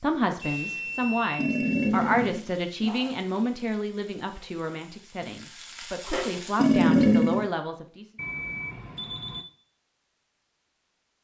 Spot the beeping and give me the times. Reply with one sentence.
The beeping can be heard from 0.4 to 1.9 s and from 8.2 to 9.4 s.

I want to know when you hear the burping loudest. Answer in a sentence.
The loudest moment of the burping is at 7 seconds.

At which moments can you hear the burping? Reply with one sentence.
The burping can be heard from 1.4 to 3.2 s and from 6.5 to 7.5 s.